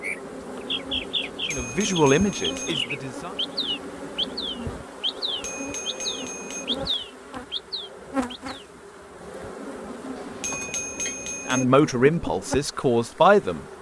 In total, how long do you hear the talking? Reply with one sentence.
The talking can be heard for 4 seconds in total.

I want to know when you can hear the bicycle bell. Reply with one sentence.
You can hear the bicycle bell from 1.3 to 2.8 s, from 5.2 to 6.7 s and from 10.2 to 11.7 s.